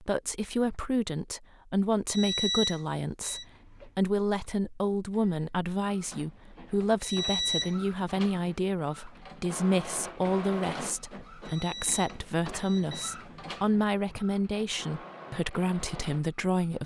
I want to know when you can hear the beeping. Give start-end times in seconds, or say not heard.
2.0-3.5, 7.0-7.8, 11.4-13.2.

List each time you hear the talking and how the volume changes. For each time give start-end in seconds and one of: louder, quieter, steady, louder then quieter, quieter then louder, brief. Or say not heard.
0.0-16.8 steady.